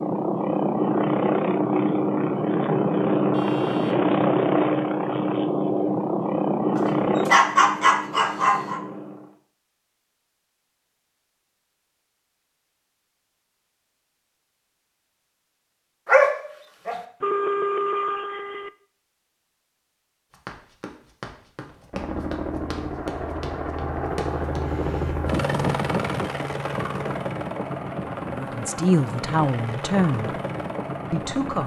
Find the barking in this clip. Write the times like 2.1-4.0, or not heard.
6.8-8.8, 16.1-16.9.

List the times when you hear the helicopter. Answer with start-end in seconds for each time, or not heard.
0.0-9.3, 21.8-31.6.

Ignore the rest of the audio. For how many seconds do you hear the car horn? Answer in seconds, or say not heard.
2 s.